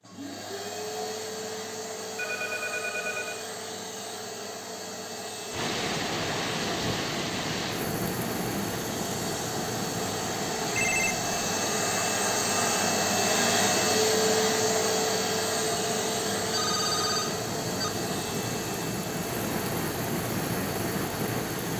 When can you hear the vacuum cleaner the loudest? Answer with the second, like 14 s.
14 s.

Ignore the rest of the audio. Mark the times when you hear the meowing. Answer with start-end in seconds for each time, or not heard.
not heard.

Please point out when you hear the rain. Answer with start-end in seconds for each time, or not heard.
5.5-21.7.